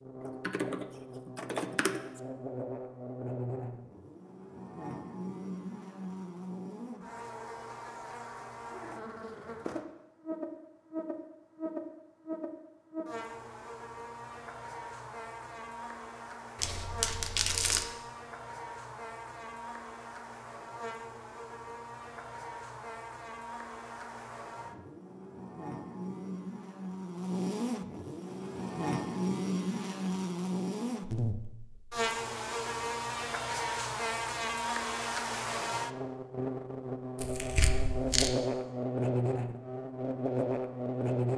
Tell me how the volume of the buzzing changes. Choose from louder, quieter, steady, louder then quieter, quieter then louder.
louder.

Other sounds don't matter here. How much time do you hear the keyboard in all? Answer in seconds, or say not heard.
2 s.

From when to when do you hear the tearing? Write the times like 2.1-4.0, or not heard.
16.6-17.9, 37.1-38.3.